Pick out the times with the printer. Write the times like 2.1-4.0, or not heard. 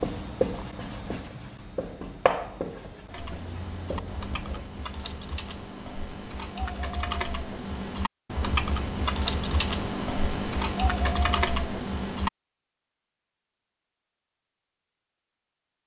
not heard.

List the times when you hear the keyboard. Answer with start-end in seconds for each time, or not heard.
3.1-12.3.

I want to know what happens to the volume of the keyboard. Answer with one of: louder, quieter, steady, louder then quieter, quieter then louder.
louder.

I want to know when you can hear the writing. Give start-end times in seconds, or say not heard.
0.0-4.7.